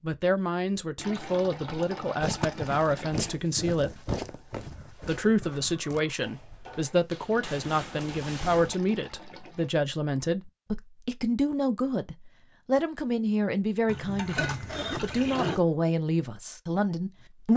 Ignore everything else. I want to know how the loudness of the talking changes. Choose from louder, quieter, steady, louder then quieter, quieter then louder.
steady.